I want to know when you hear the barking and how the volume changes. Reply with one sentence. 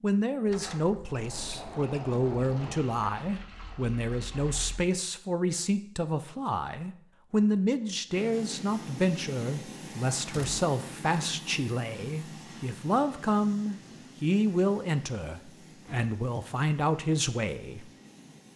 The barking can't be heard in this clip.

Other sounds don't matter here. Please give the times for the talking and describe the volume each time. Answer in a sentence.
The talking can be heard from 0.0 to 17.9 s, at a steady volume.